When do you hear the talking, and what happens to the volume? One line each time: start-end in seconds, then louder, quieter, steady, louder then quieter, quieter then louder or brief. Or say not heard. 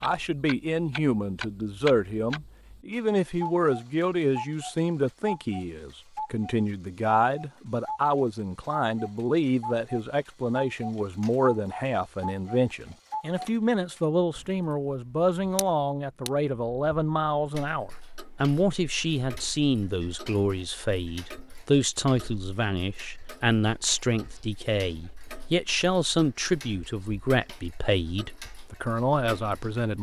0.0-29.9 steady.